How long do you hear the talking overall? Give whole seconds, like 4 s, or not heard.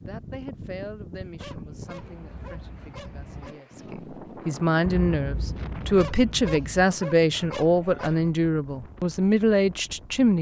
10 s.